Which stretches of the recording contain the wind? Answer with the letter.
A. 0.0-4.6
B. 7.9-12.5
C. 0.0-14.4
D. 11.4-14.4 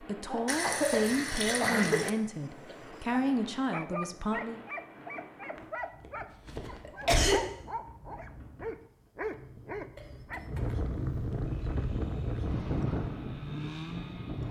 C.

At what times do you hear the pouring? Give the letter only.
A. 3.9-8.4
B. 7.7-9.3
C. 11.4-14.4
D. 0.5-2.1
D.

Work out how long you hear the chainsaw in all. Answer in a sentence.
The chainsaw can be heard for 3 seconds in total.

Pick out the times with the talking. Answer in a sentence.
You can hear the talking from 0.0 to 4.6 s.